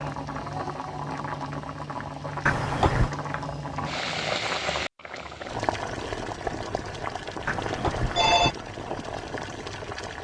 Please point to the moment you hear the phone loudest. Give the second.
8 s.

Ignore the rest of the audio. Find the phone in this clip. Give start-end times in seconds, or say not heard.
2.5-3.1, 7.5-8.6.